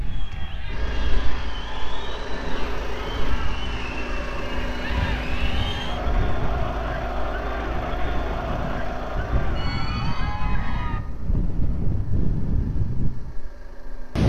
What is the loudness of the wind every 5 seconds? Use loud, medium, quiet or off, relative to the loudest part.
quiet, medium, loud.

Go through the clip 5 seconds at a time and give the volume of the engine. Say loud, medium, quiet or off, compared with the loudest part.
loud, loud, quiet.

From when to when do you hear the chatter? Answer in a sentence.
You can hear the chatter from 0.0 to 11.0 s.